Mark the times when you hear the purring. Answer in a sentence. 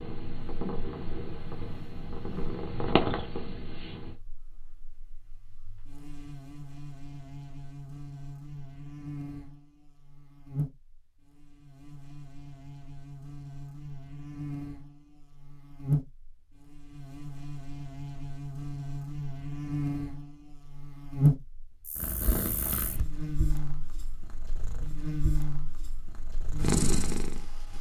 The purring can be heard from 0.0 to 4.2 s and from 21.9 to 27.7 s.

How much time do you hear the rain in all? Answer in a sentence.
The rain can't be heard in this clip.